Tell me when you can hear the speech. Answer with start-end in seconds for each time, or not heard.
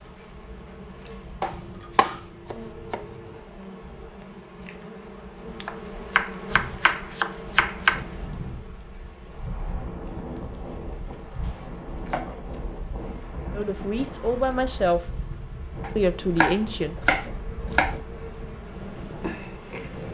13.6-15.2, 15.9-16.9.